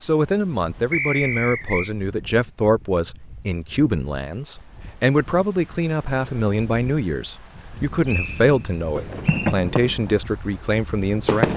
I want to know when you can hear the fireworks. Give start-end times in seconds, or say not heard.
8.9-11.5.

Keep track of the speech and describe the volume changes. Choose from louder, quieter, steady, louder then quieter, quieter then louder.
steady.